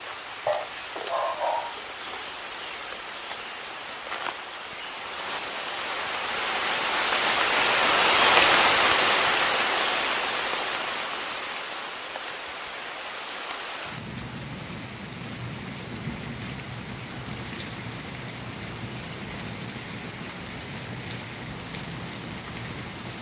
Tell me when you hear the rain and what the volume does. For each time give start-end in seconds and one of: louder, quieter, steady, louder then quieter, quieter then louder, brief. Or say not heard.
0.0-23.1 louder then quieter.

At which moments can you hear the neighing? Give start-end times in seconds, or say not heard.
not heard.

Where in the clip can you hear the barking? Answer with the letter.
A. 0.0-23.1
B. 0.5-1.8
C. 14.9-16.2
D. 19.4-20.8
B.